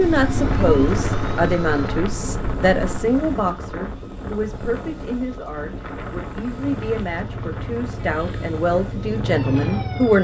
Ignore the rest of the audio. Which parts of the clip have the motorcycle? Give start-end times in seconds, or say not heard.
0.0-2.9, 6.7-10.1.